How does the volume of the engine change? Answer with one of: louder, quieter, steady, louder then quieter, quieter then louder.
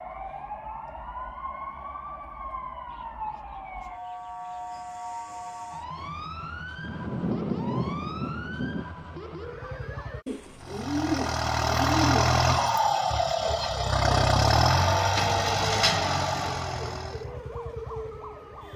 steady.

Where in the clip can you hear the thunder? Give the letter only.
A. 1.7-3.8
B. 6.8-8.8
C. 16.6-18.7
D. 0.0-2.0
B.